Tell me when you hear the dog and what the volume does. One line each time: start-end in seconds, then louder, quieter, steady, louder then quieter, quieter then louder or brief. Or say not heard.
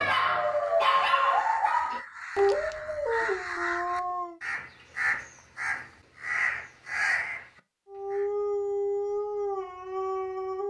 0.0-4.3 quieter
7.8-10.6 brief.